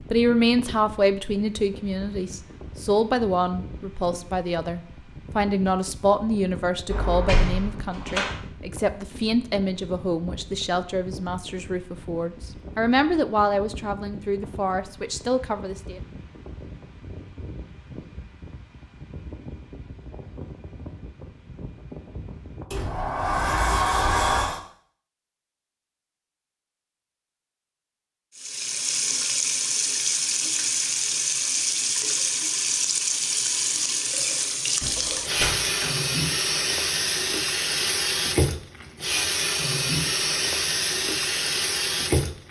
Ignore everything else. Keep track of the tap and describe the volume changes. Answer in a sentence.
The loudness of the tap stays about the same.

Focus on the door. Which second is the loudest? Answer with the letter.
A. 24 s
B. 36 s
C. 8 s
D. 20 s
A.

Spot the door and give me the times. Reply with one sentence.
You can hear the door from 6.9 to 8.3 s, from 22.7 to 24.6 s and from 34.8 to 36.0 s.